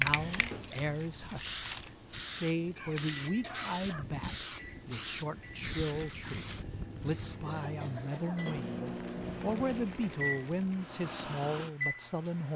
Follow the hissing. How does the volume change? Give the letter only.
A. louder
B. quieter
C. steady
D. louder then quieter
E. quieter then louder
B.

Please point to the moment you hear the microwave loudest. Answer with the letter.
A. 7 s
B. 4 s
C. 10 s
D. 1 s
C.